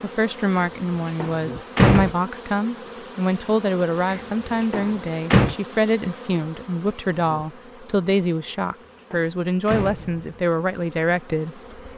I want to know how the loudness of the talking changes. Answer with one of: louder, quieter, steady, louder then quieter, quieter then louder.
steady.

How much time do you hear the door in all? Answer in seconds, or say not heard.
5 s.